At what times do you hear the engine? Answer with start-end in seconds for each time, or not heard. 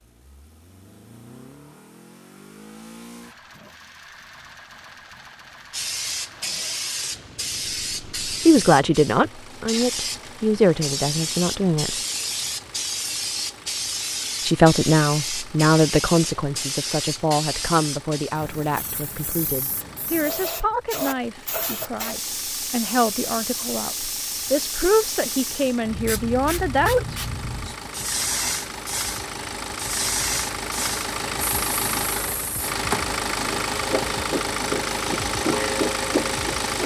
0.0-36.8.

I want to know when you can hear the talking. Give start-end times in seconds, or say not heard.
8.2-12.0, 14.4-27.2.